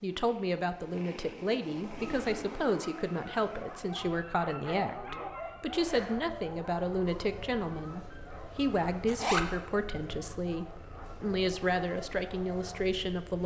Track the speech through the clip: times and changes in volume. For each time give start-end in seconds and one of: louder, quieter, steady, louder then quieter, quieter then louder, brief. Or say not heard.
0.0-13.4 steady.